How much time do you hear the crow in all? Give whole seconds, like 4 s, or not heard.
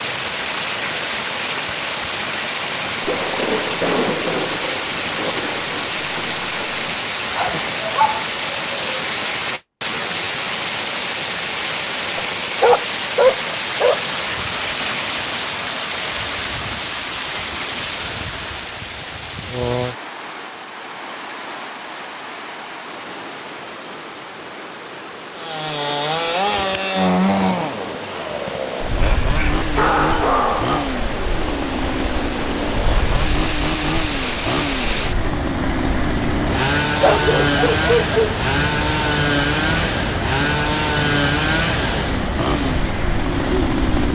not heard.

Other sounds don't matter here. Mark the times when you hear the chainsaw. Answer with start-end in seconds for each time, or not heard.
25.4-44.1.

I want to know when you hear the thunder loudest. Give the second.
4 s.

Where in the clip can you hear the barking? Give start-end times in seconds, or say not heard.
7.3-8.8, 12.2-14.1, 29.0-30.9, 37.0-38.4.